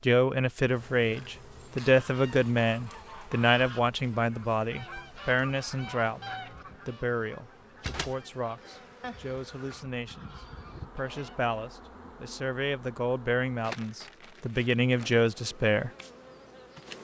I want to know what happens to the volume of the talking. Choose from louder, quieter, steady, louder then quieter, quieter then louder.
quieter then louder.